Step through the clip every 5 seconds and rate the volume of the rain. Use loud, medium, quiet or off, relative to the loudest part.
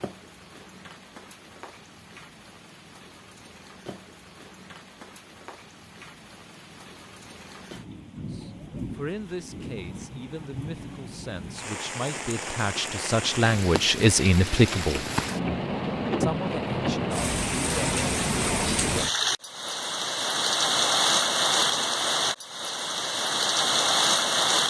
quiet, quiet, medium, loud, loud.